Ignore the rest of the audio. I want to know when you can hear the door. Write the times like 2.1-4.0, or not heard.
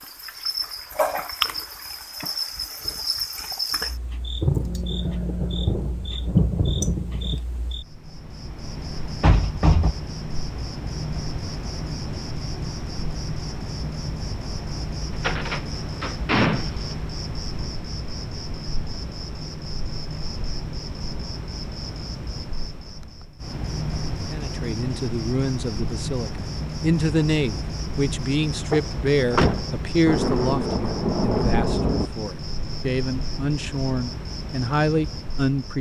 9.2-9.9, 15.2-16.7, 28.7-29.7.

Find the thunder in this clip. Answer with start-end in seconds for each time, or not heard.
4.4-7.4, 30.1-32.1.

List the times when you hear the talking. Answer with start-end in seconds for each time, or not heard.
24.3-35.7.